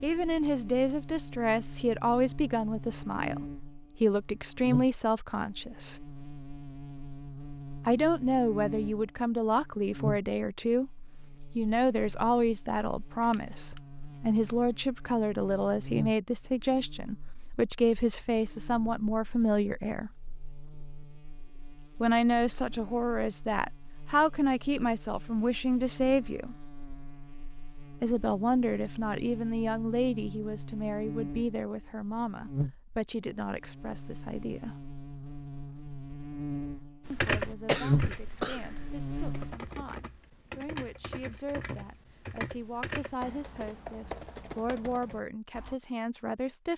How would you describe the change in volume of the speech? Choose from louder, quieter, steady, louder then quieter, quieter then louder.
quieter.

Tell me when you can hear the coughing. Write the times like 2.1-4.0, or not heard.
13.2-13.8, 37.6-38.6.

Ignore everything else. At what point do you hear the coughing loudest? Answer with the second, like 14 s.
38 s.